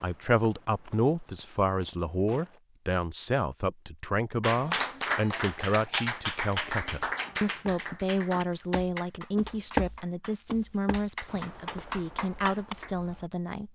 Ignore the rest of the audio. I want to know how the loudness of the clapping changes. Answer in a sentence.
The loudness of the clapping goes down, then up.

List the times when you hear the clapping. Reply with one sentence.
You can hear the clapping from 4.4 to 12.9 s.